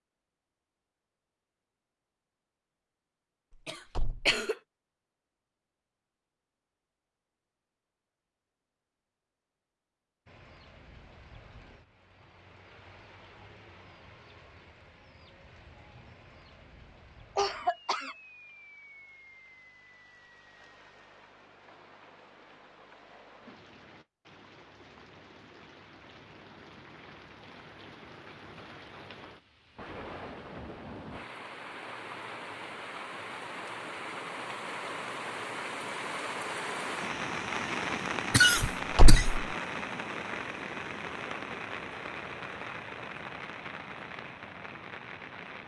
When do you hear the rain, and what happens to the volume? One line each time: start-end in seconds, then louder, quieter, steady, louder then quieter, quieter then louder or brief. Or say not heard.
10.2-45.6 louder.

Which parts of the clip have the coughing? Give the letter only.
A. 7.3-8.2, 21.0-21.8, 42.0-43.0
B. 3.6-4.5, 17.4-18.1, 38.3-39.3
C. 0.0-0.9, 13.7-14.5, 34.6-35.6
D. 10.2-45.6
B.